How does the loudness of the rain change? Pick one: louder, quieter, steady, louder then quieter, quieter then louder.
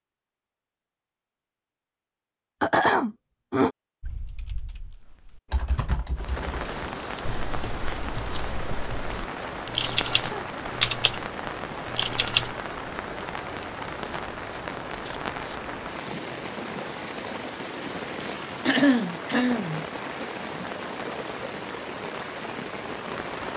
steady.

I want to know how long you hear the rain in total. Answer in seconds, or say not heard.
17 s.